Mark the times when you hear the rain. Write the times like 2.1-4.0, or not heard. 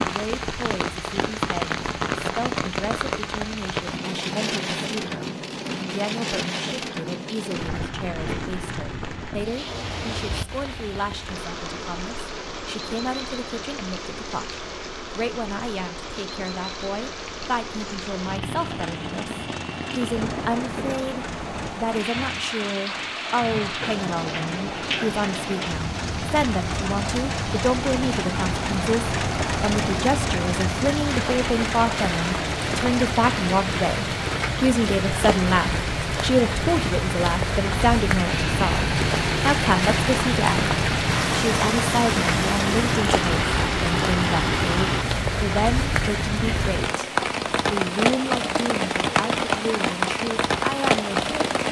0.0-51.6.